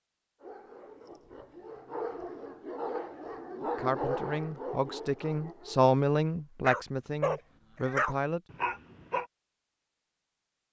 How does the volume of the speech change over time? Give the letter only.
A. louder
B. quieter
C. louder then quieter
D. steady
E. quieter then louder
C.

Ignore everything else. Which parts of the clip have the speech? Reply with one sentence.
You can hear the speech from 3.6 to 8.4 s.